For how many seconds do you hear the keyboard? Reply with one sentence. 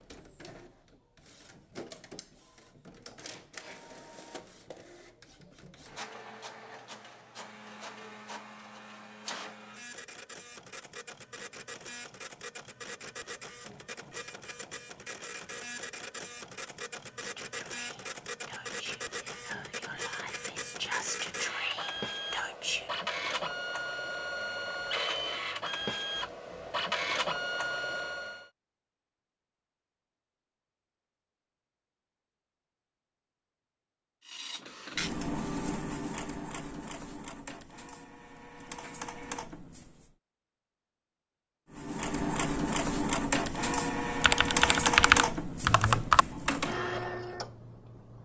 The keyboard can be heard for 2 seconds in total.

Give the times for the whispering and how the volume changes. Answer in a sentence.
The whispering can be heard from 17.1 to 22.9 s, getting louder.